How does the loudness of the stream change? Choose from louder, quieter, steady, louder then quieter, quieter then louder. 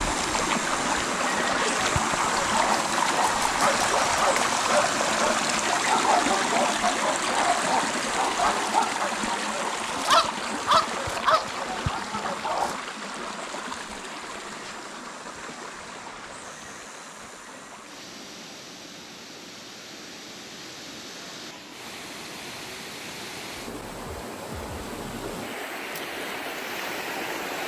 quieter then louder.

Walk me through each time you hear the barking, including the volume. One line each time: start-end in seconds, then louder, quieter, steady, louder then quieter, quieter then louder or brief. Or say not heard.
1.8-12.8 steady.